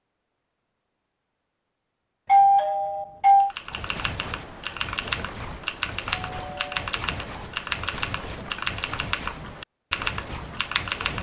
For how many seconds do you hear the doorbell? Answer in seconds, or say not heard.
2 s.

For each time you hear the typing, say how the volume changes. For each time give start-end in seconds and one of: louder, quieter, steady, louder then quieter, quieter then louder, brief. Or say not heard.
3.4-11.1 steady.